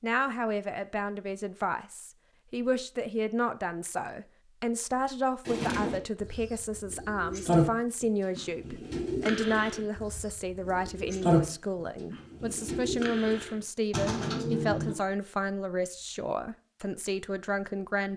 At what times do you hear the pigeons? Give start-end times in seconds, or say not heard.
5.5-14.9.